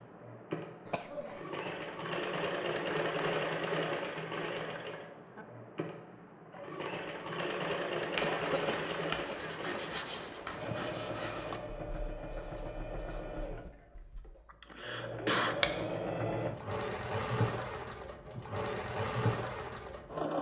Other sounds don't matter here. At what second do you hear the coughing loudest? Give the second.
15 s.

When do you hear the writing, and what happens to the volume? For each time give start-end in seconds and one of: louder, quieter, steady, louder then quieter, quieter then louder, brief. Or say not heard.
8.1-14.2 quieter.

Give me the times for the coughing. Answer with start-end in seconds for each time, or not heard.
0.8-1.4, 8.2-9.6, 14.5-15.6.